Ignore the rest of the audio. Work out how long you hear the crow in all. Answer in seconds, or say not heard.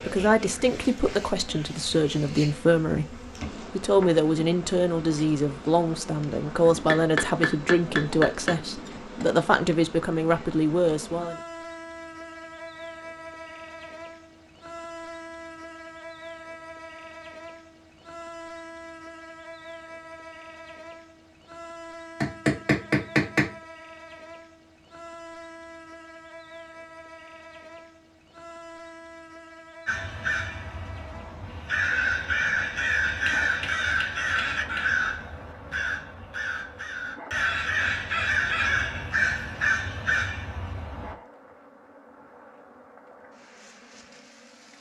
11 s.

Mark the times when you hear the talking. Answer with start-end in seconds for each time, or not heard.
0.0-11.4.